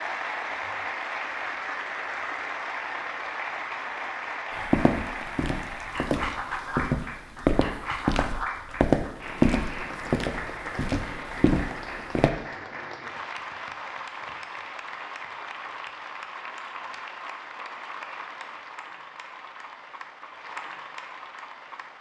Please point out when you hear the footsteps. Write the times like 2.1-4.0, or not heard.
4.5-12.3.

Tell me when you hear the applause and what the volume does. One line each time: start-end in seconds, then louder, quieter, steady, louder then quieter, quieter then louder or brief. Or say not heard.
0.0-21.9 quieter.